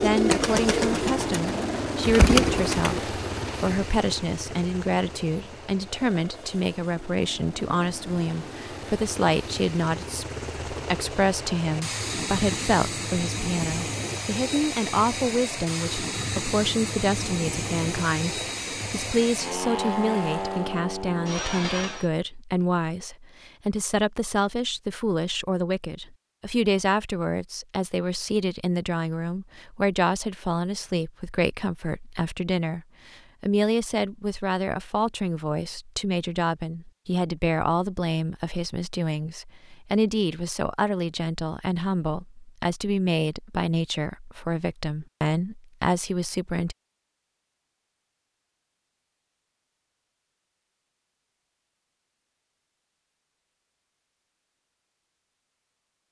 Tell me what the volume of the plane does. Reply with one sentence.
The loudness of the plane goes down, then up.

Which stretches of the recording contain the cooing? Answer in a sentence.
You can hear the cooing from 0.0 to 3.0 s.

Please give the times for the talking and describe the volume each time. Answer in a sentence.
The talking can be heard from 0.0 to 46.8 s, at a steady volume.